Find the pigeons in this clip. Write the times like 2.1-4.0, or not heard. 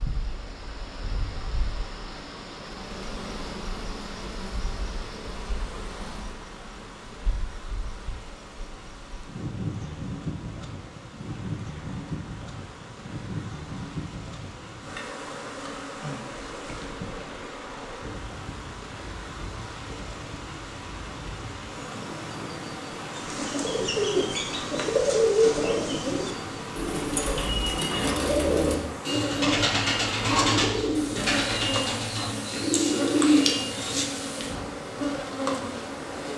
23.1-34.5.